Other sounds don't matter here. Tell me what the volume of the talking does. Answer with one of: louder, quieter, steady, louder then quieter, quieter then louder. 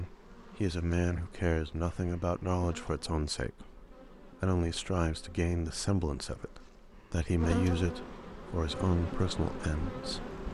steady.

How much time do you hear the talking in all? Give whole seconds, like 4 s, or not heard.
10 s.